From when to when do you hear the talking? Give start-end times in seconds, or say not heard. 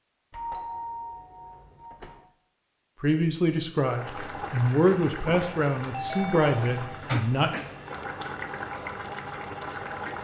3.0-7.5.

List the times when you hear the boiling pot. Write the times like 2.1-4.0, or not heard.
3.8-10.2.